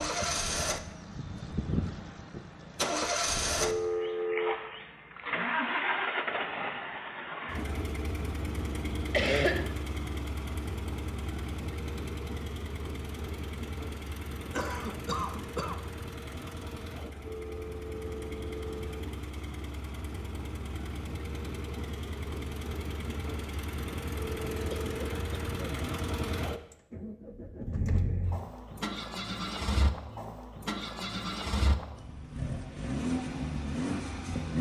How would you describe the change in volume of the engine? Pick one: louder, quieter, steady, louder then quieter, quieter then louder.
quieter then louder.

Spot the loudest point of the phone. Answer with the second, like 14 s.
4 s.